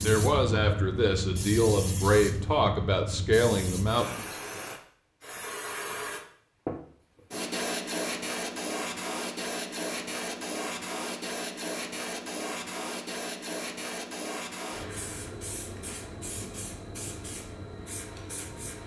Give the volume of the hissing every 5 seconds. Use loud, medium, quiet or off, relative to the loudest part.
loud, loud, loud, medium.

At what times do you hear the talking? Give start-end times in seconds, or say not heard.
0.0-4.6.